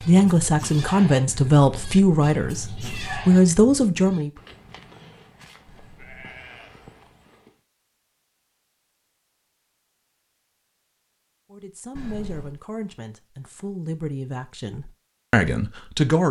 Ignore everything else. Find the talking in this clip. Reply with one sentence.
You can hear the talking from 0.0 to 4.3 s and from 11.5 to 16.2 s.